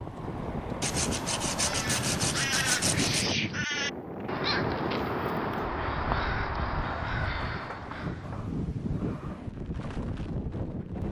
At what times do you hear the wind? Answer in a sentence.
The wind can be heard from 0.0 to 11.0 s.